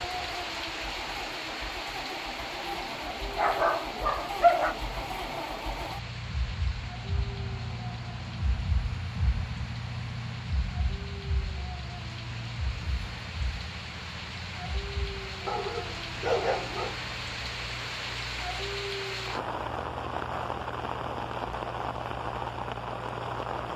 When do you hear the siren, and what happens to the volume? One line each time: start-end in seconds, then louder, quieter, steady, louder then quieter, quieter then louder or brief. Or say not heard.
not heard.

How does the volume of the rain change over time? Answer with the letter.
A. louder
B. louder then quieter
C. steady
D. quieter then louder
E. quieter
D.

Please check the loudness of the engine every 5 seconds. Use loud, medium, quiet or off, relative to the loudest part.
loud, loud, loud, medium, medium.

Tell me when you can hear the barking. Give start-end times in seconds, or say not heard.
2.0-4.8, 15.4-16.9.